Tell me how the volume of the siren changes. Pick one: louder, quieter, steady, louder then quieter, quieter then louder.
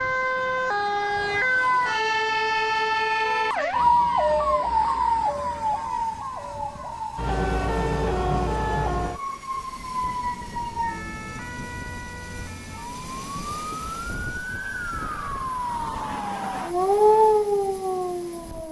quieter then louder.